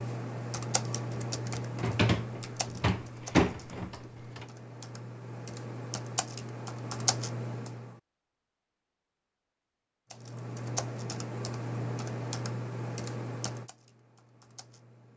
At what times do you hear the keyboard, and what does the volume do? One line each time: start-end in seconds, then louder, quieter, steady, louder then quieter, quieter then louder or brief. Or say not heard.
0.0-8.0 quieter then louder
10.1-15.1 quieter.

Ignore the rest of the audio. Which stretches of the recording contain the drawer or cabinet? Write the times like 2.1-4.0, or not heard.
1.8-4.5.